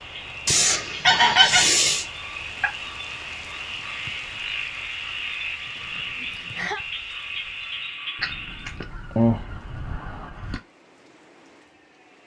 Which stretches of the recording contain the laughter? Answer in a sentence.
You can hear the laughter from 5.8 to 6.8 s.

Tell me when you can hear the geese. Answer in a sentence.
You can hear the geese from 0.5 to 2.0 s and from 8.2 to 10.6 s.